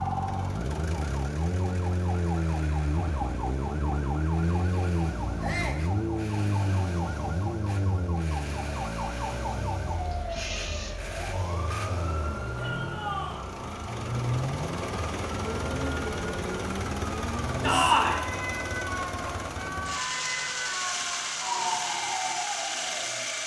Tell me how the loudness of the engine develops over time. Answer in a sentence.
The loudness of the engine goes up.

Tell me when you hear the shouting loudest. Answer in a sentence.
The volume of the shouting peaks at 18 seconds.